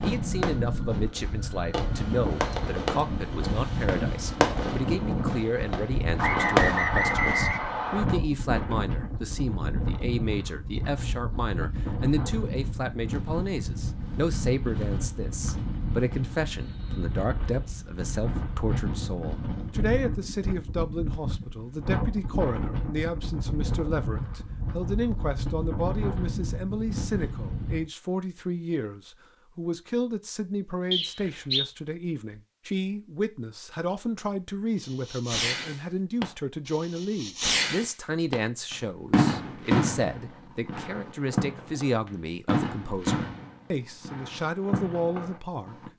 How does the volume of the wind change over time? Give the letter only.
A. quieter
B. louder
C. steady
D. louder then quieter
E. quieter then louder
C.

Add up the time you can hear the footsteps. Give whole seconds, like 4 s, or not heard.
not heard.